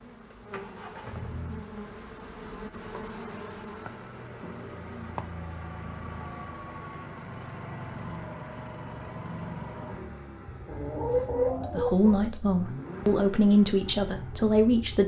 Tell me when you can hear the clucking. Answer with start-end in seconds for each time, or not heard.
10.7-12.2.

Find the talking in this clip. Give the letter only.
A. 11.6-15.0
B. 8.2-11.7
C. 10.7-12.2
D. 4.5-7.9
A.